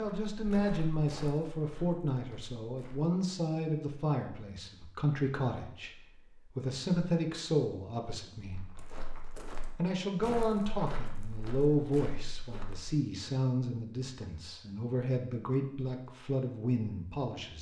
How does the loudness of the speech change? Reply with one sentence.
The volume of the speech stays about the same.